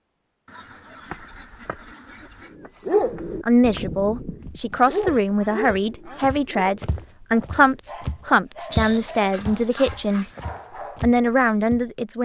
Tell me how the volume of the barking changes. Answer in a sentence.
The loudness of the barking goes down.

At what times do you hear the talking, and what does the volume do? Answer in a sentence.
You can hear the talking from 3.5 to 10.2 s, at a steady volume; and briefly from 11.0 to 12.2 s.